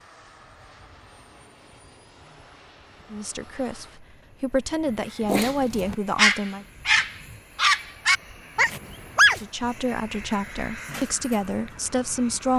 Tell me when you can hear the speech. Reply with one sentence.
The speech can be heard from 3.1 to 6.7 s and from 9.3 to 12.5 s.